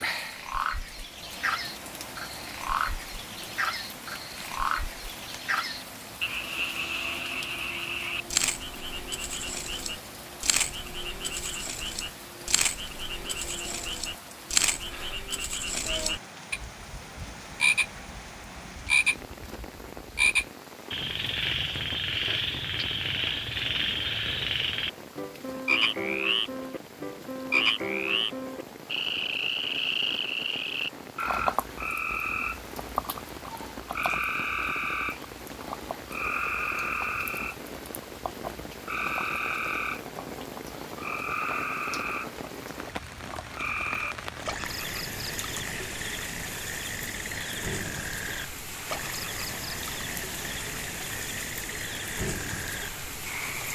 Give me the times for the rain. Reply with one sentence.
You can hear the rain from 0.0 to 53.7 s.